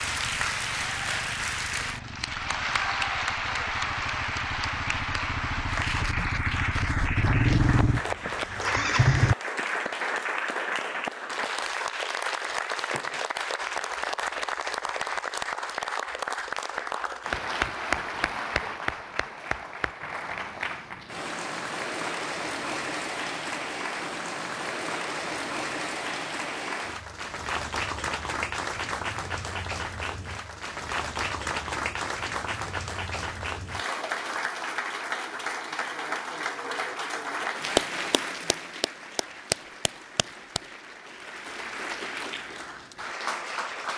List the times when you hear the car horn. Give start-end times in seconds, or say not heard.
not heard.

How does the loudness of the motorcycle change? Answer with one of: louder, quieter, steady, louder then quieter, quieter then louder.
louder.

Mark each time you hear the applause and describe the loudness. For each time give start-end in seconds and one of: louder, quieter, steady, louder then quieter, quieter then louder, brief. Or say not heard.
0.0-43.9 steady.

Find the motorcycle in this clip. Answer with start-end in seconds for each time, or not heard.
0.0-9.3.